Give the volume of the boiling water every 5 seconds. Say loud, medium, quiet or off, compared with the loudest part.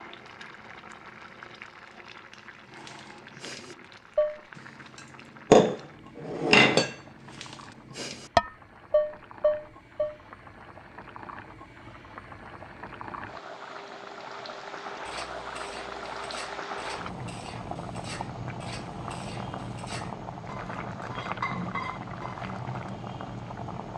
medium, quiet, medium, loud, loud.